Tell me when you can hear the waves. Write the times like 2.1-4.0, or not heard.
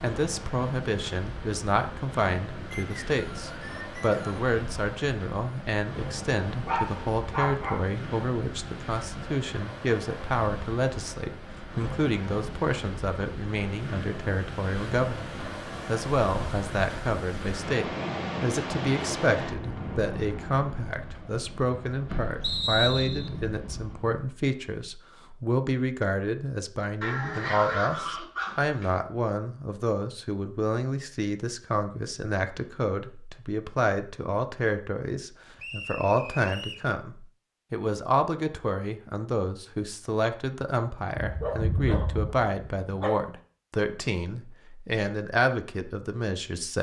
0.0-24.2.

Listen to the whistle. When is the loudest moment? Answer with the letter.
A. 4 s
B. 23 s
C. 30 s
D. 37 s
B.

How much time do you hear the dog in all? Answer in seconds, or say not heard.
5 s.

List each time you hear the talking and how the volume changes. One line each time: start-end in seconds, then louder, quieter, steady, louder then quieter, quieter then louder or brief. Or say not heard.
0.0-46.7 steady.